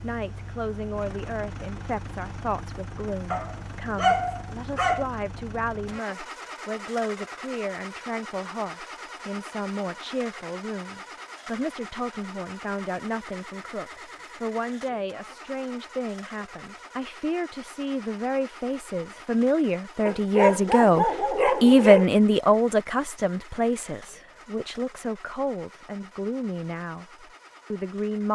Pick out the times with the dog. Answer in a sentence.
You can hear the dog from 3.3 to 5.0 s and from 20.1 to 22.1 s.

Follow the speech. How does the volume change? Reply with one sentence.
The loudness of the speech goes up, then down.